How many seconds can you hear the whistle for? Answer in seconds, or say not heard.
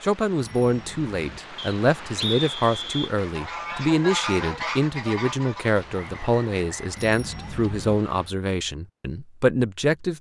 3 s.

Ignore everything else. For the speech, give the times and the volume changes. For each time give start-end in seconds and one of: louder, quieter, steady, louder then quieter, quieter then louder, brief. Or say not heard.
0.0-10.1 steady.